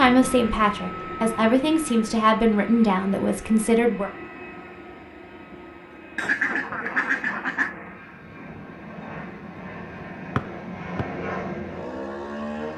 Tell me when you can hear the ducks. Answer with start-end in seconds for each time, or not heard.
6.2-7.7.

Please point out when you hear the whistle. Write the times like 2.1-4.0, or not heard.
10.3-11.1.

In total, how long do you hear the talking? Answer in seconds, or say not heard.
4 s.